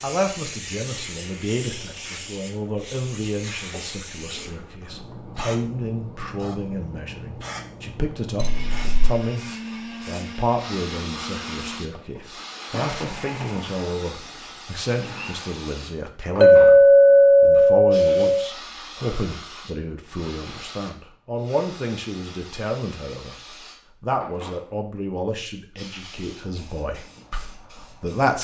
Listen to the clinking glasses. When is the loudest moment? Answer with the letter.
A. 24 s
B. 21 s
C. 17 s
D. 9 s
C.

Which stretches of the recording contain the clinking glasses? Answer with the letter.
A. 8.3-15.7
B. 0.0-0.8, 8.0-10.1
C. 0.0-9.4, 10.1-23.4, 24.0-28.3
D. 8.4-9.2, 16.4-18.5
D.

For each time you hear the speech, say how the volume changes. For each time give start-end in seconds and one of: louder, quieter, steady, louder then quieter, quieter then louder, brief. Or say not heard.
0.0-9.4 steady
10.1-23.4 steady
24.0-28.3 quieter.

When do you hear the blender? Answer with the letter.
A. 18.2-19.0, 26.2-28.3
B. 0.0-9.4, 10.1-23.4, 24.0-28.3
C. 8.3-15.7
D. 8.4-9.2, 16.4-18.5
C.